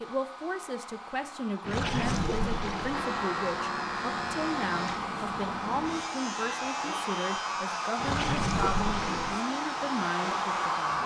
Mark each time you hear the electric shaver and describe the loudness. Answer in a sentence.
The electric shaver can be heard from 2.9 to 11.0 s, getting quieter.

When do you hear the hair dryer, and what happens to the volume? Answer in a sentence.
You can hear the hair dryer from 0.0 to 11.0 s, getting louder.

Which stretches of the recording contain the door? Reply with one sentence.
The door can't be heard in this clip.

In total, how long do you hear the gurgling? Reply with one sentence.
You can hear the gurgling for 3 seconds altogether.